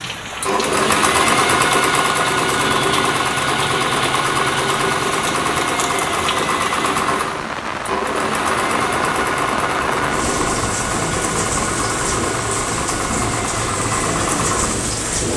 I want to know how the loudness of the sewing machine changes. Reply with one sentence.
The loudness of the sewing machine goes down.